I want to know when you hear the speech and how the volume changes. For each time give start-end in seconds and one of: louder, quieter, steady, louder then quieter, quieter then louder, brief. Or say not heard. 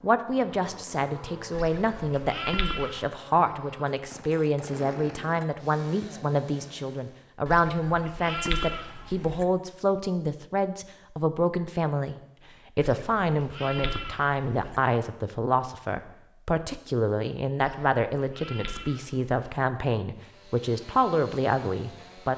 0.0-22.3 steady.